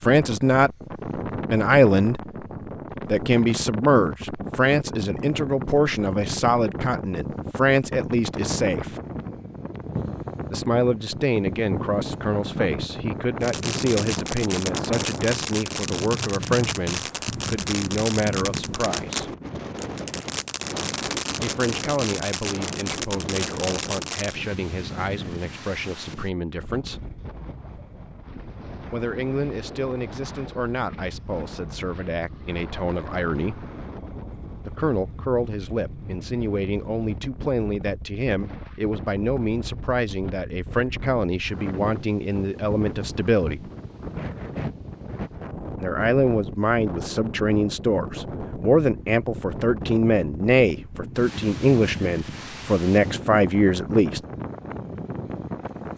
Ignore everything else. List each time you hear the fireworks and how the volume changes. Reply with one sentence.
You can hear the fireworks from 13.4 to 24.4 s, at a steady volume.